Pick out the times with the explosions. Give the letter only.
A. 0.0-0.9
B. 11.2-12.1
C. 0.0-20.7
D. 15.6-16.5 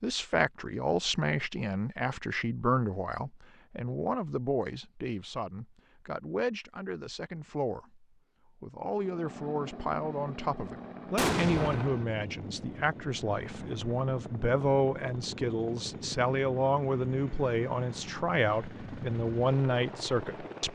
B.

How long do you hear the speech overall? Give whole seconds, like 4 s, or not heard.
21 s.